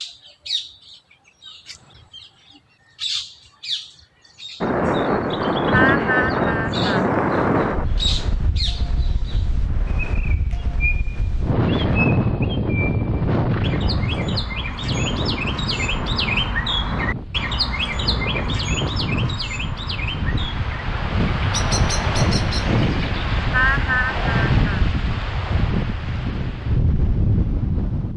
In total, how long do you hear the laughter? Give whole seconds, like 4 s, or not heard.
3 s.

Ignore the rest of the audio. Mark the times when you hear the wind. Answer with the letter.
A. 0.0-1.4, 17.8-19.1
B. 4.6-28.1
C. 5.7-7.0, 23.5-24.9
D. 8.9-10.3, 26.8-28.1
B.